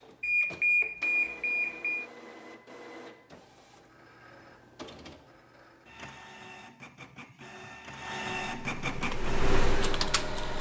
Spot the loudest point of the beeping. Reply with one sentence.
The volume of the beeping peaks at 1 second.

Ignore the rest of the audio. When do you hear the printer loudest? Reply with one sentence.
The volume of the printer peaks at 9 seconds.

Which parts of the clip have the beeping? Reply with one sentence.
You can hear the beeping from 0.2 to 2.0 s.